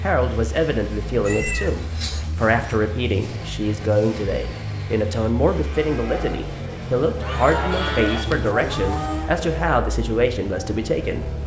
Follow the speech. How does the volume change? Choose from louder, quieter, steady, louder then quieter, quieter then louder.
steady.